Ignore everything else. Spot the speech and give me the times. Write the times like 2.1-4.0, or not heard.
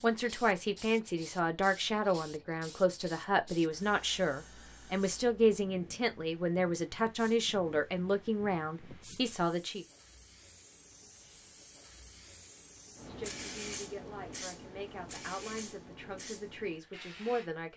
0.0-9.8, 13.1-17.7.